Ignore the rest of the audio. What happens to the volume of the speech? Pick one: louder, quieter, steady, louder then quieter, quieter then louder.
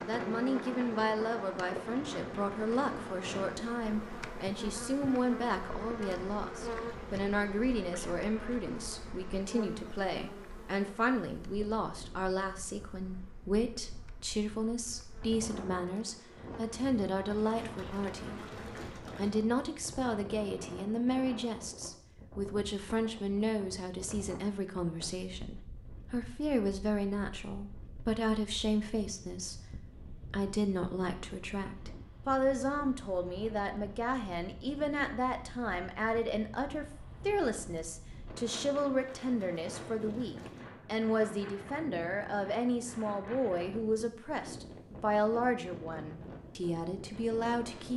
steady.